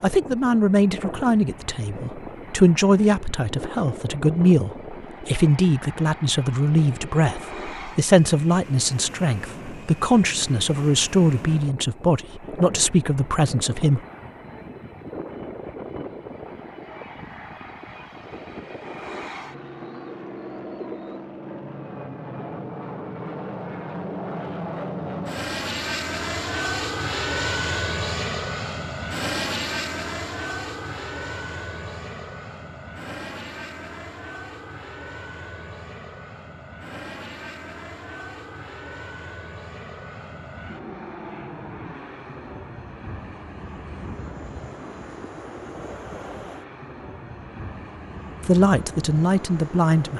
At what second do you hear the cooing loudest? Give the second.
21 s.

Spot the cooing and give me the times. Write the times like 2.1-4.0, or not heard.
19.5-21.2.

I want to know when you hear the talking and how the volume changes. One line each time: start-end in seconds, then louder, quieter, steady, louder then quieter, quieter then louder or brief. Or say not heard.
0.0-14.0 steady
48.5-50.1 brief.